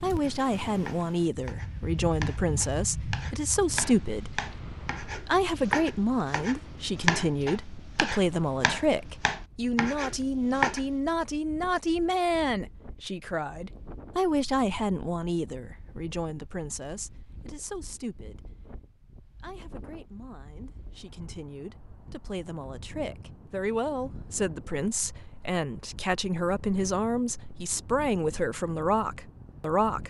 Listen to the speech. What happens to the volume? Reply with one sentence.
The loudness of the speech goes down, then up.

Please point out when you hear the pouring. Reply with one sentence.
You can't hear the pouring here.